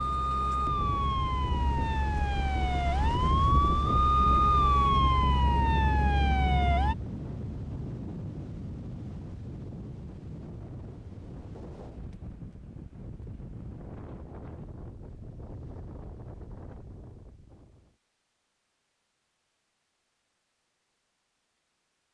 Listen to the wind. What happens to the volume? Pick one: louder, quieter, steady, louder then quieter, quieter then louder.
quieter.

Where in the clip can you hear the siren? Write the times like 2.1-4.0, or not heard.
0.0-7.0.